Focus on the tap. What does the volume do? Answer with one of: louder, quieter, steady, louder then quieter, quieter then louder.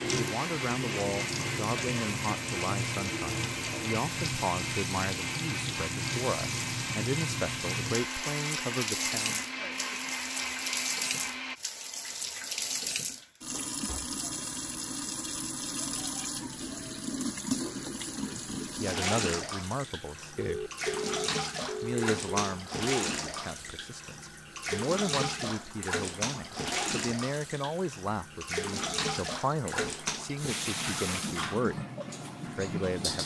steady.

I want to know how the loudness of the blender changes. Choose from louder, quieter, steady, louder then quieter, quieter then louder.
steady.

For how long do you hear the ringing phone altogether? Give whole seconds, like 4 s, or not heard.
2 s.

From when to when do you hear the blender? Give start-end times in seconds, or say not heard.
0.0-11.6.